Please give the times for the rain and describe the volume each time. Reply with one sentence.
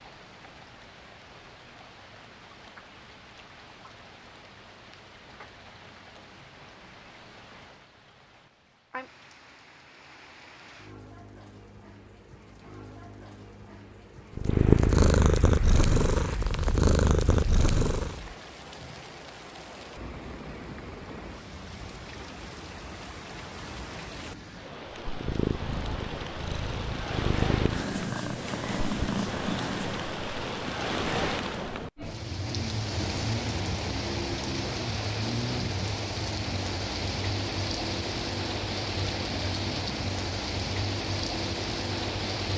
You can hear the rain from 0.0 to 42.5 s, getting louder.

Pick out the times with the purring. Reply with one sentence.
You can hear the purring from 14.3 to 18.4 s and from 25.1 to 30.2 s.